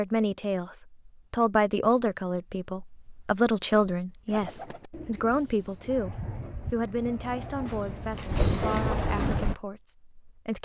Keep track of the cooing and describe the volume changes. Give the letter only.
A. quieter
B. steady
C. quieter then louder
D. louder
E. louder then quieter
D.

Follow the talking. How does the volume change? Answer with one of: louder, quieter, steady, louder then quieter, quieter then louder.
quieter.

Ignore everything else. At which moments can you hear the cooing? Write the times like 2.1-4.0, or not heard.
4.3-9.6.